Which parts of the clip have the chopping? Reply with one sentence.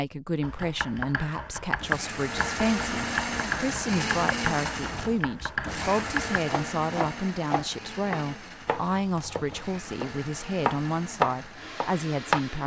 The chopping can be heard from 0.4 to 12.4 s.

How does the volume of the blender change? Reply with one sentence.
The loudness of the blender goes down.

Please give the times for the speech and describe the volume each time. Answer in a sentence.
The speech can be heard from 0.0 to 12.6 s, at a steady volume.